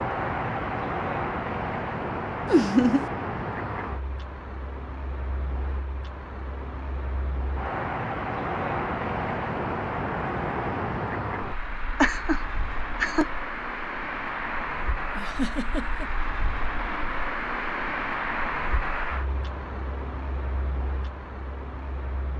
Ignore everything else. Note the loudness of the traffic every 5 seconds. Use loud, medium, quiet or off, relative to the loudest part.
loud, loud, loud, loud, medium.